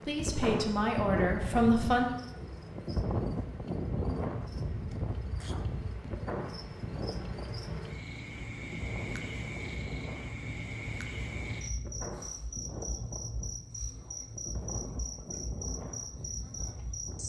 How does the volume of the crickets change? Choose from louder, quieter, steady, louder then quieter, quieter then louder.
louder.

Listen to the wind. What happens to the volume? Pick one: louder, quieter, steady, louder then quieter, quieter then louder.
quieter.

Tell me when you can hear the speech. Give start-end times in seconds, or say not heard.
0.1-2.0.